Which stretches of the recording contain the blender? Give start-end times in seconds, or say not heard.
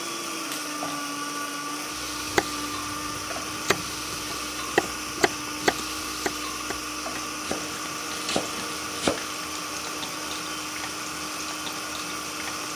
0.0-12.7.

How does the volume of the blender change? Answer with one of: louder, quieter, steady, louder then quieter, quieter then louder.
steady.